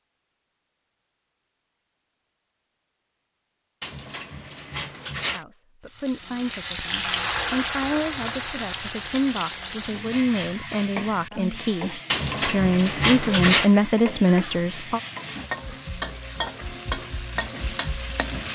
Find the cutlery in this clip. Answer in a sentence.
You can hear the cutlery from 3.8 to 5.5 s and from 12.1 to 13.7 s.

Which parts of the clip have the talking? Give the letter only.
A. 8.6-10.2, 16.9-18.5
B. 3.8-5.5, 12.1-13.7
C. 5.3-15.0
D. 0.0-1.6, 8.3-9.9
C.